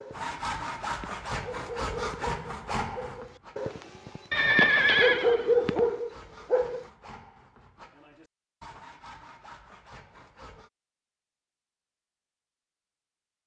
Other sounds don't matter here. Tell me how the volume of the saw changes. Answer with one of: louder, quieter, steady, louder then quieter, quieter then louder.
quieter.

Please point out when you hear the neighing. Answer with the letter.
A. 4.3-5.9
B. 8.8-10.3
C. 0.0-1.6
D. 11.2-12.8
A.